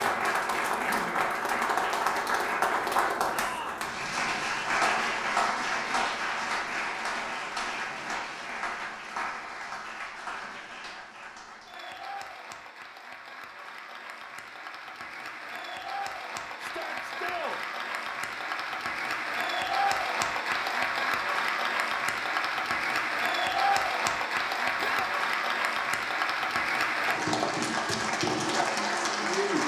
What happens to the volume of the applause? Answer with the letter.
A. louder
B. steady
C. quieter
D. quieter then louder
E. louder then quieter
D.